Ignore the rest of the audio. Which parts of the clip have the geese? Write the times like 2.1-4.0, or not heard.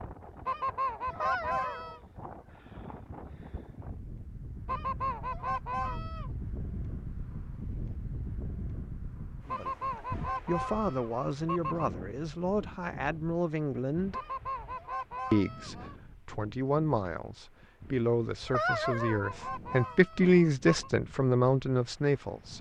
0.5-2.0, 4.7-6.3, 9.4-11.9, 14.1-15.9, 18.6-20.9.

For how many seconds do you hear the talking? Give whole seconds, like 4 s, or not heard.
12 s.